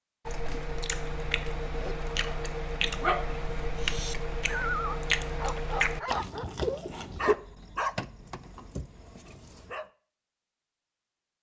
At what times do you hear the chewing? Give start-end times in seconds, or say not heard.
0.2-7.3.